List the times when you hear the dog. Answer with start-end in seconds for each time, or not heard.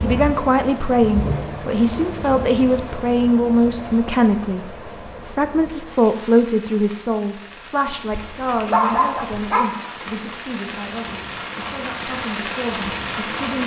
8.1-9.7.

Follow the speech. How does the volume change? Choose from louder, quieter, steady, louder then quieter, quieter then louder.
quieter.